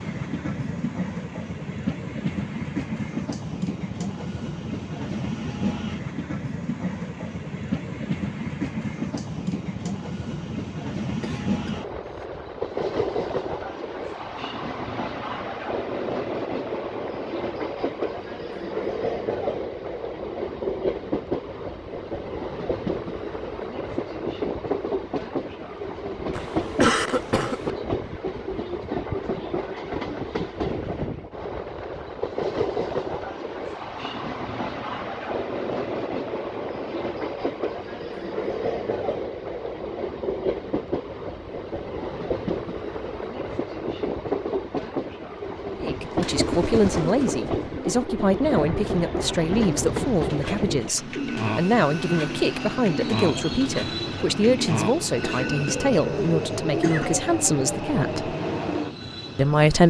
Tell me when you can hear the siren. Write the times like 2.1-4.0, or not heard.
not heard.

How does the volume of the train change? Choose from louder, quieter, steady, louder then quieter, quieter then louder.
steady.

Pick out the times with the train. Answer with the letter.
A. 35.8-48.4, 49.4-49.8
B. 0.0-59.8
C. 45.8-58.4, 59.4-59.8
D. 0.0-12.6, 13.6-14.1
B.